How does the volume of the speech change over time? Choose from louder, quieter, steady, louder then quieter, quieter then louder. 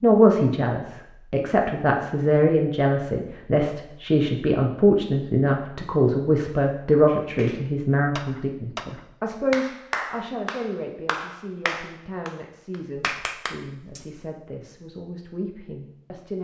quieter.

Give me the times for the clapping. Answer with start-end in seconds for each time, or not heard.
7.0-14.2.